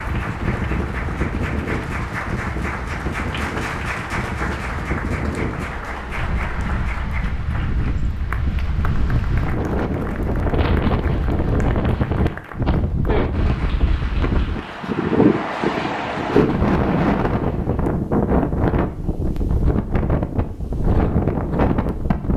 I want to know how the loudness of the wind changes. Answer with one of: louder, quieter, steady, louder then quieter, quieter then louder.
louder.